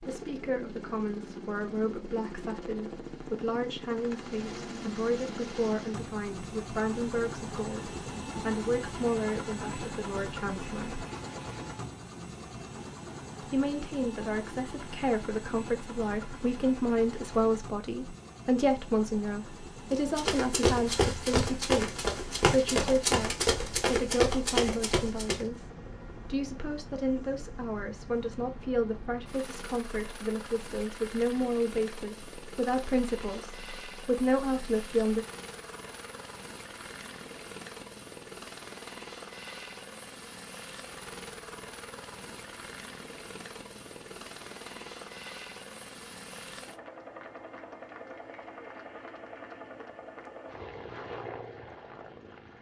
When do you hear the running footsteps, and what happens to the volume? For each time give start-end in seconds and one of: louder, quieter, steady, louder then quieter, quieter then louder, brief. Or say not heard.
19.9-25.4 steady.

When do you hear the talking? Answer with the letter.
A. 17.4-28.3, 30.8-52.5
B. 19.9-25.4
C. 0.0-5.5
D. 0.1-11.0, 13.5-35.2
D.